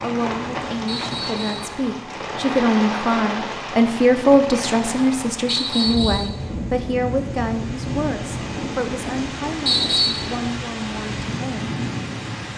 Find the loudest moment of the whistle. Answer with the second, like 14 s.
10 s.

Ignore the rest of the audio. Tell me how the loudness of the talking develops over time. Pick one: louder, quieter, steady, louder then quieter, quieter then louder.
louder then quieter.